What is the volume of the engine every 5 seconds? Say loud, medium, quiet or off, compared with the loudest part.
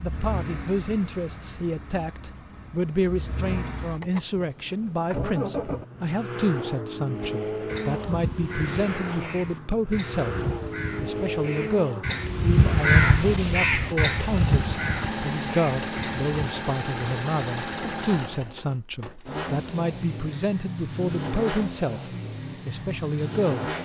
medium, loud, loud, loud, loud.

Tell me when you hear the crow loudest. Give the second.
13 s.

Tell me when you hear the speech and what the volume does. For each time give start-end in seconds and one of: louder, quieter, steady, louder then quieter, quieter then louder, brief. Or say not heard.
0.0-23.7 steady.